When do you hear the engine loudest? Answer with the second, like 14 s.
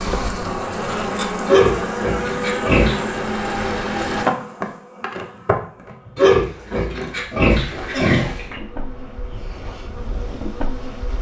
4 s.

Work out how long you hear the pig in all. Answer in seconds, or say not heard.
4 s.